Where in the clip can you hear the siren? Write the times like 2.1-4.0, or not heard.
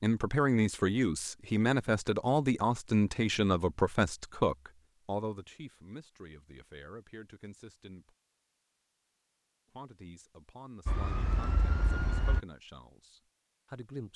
10.8-12.4.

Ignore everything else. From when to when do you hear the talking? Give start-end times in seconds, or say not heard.
0.0-8.2, 9.8-14.1.